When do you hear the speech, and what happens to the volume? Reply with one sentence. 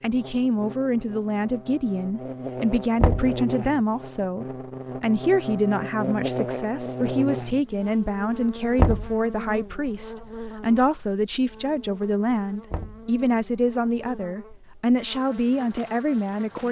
The speech can be heard from 0.0 to 16.6 s, at a steady volume.